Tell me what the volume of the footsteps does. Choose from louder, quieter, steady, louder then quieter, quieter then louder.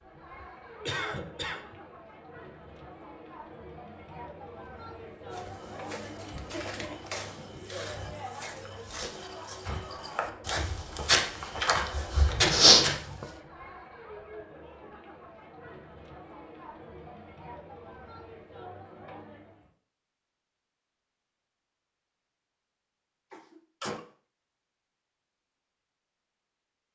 louder.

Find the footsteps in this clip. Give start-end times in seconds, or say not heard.
5.3-13.1.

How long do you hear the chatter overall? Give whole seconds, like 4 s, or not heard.
20 s.